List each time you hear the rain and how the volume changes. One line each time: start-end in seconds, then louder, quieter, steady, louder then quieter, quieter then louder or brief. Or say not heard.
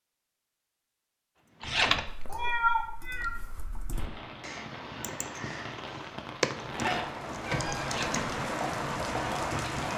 3.9-9.9 louder.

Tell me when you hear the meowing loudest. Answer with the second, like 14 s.
3 s.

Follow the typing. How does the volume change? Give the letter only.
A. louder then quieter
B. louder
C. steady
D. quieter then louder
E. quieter
A.